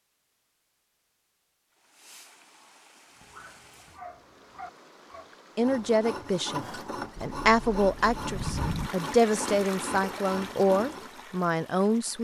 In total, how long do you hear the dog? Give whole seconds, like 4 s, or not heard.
2 s.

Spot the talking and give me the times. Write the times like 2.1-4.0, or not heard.
5.5-6.6, 7.2-12.1.